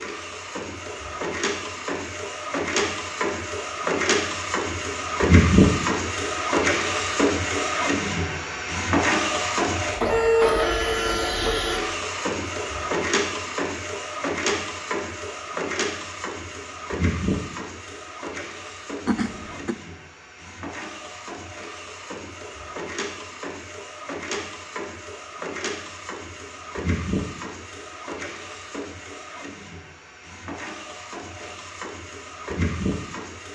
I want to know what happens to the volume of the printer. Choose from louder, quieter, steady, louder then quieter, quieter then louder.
quieter.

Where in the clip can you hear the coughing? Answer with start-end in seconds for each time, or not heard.
19.1-19.8.